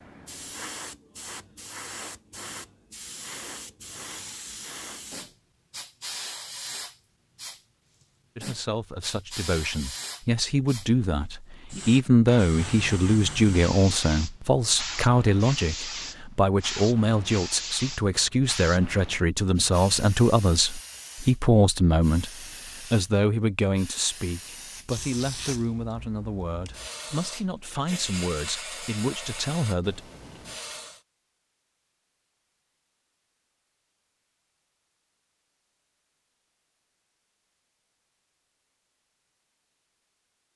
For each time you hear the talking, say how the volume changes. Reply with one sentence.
The talking can be heard from 8.3 to 30.1 s, getting quieter.